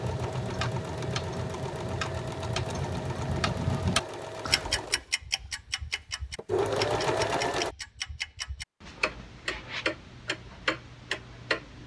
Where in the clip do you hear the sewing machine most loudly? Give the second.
7 s.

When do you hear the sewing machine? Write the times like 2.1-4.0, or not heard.
0.0-7.8.